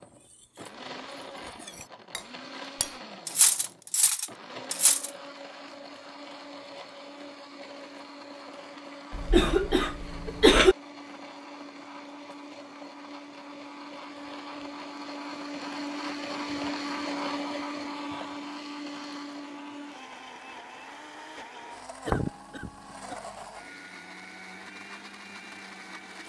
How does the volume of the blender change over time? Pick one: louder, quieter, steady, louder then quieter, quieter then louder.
louder then quieter.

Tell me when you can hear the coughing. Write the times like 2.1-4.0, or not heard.
9.1-10.8, 22.1-23.1.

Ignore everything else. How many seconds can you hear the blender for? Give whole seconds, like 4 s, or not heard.
26 s.